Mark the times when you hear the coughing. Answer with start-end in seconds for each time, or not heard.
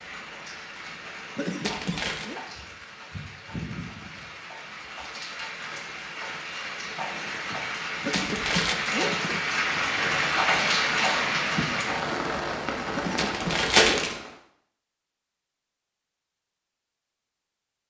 1.4-2.4, 8.0-9.4, 12.9-14.1.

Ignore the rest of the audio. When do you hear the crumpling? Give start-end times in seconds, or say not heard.
1.6-2.2, 8.1-8.8, 13.2-14.2.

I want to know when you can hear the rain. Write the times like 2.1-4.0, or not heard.
0.0-14.4.